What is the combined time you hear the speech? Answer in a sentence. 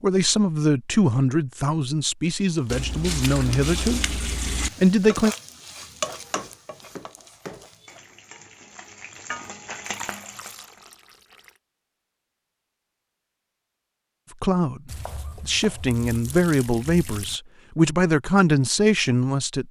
You can hear the speech for 9 seconds altogether.